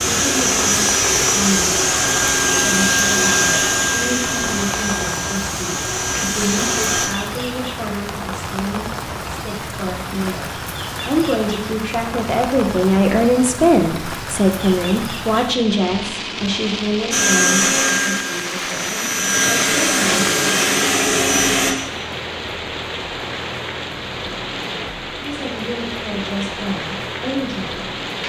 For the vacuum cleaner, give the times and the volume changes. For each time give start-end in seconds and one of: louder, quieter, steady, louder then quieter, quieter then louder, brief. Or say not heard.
0.0-7.1 quieter
17.1-21.8 quieter then louder.